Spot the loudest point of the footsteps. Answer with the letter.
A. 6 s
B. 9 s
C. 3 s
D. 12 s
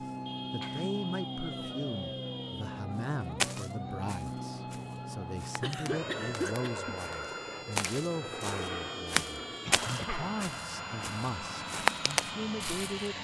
D.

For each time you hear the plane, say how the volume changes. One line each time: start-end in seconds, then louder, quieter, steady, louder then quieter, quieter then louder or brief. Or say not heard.
0.0-13.1 steady.